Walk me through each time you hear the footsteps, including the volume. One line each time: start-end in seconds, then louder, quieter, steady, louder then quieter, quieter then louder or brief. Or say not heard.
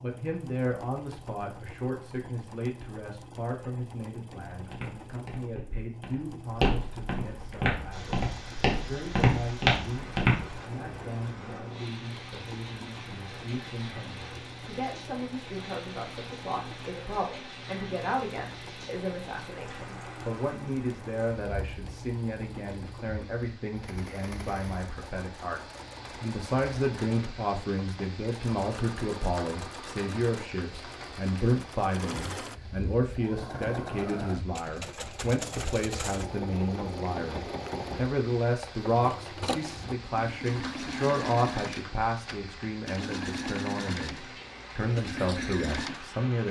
4.5-10.6 louder.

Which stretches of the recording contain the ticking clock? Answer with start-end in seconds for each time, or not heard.
not heard.